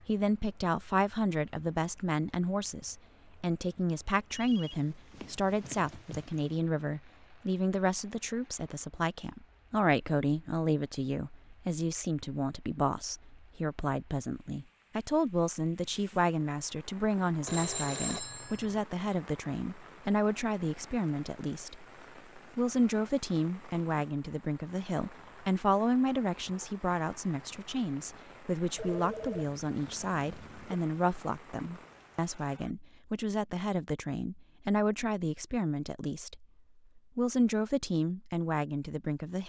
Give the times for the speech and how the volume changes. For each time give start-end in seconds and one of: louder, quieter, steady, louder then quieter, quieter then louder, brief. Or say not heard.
0.1-39.4 steady.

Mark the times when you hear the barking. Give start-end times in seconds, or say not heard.
not heard.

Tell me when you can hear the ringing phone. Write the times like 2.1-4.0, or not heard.
4.3-6.6, 17.4-18.8, 28.8-30.8.